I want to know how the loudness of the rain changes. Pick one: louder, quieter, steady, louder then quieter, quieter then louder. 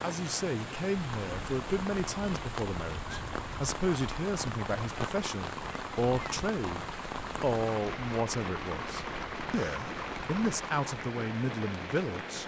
steady.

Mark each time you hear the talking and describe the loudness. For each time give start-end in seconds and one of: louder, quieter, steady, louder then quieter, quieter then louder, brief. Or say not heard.
0.0-12.4 steady.